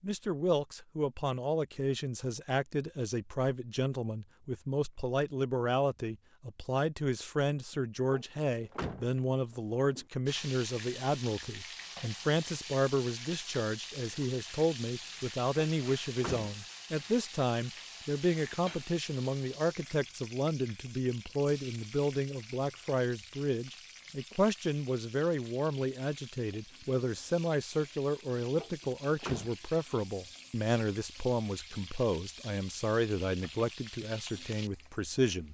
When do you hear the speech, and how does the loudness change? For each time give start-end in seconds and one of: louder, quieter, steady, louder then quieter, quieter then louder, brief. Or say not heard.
0.0-35.4 steady.